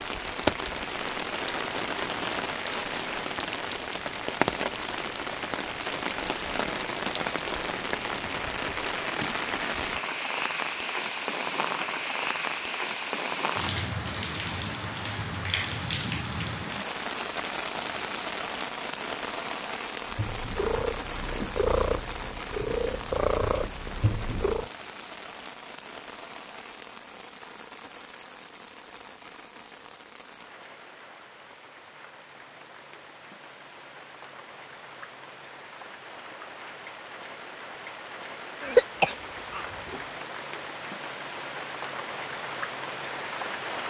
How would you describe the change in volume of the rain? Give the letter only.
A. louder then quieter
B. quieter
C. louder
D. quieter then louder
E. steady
D.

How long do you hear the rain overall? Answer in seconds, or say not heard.
44 s.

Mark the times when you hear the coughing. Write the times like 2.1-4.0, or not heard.
38.6-40.0.